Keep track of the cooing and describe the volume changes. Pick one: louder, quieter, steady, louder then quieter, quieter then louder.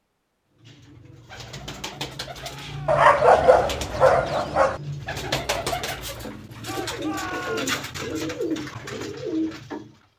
louder.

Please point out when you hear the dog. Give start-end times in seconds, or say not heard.
2.9-4.8.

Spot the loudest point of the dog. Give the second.
3 s.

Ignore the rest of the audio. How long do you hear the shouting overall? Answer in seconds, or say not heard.
2 s.